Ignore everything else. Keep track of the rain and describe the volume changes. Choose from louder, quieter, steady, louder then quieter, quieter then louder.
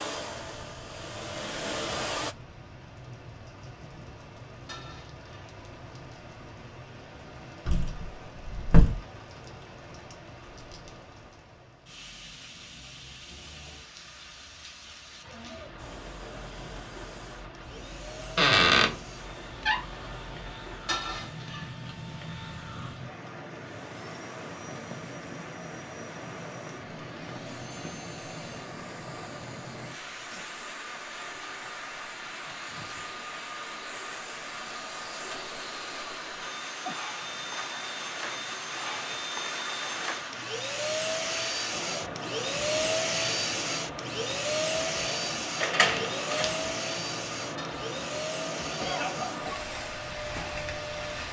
louder.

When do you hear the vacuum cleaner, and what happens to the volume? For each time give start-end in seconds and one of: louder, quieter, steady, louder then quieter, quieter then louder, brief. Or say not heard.
0.0-2.4 brief
15.8-51.2 louder.